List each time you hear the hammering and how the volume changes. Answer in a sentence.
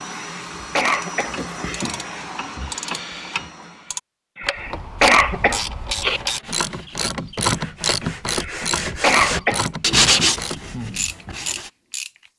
You can't hear the hammering here.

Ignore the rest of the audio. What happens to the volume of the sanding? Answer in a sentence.
The volume of the sanding goes up, then down.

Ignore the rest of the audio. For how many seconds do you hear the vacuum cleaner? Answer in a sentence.
The vacuum cleaner can be heard for 4 seconds in total.